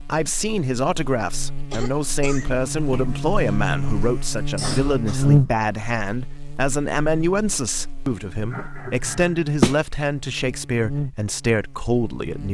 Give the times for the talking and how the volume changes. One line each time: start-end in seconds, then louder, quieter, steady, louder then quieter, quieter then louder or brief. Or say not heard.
0.0-12.4 steady.